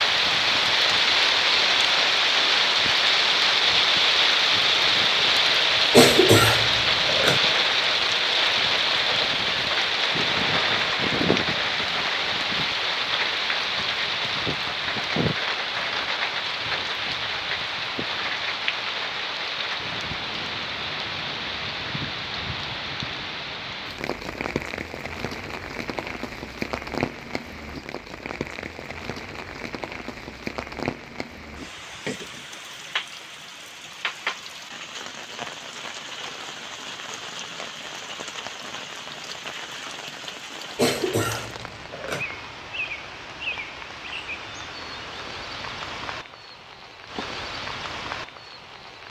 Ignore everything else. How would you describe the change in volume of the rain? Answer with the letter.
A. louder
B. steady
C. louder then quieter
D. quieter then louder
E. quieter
E.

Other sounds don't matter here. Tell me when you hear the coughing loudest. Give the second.
6 s.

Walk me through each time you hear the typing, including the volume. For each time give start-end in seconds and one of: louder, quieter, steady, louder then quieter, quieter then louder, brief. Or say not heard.
not heard.